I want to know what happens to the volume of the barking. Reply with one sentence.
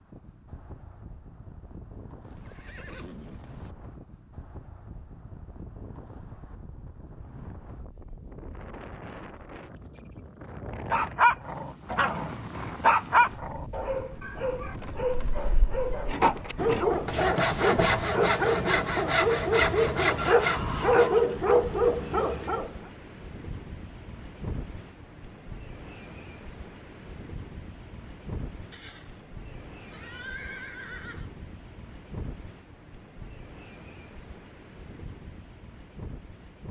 The loudness of the barking goes down, then up.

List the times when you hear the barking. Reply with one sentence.
You can hear the barking from 10.9 to 22.7 s.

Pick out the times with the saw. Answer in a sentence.
You can hear the saw from 16.1 to 21.1 s.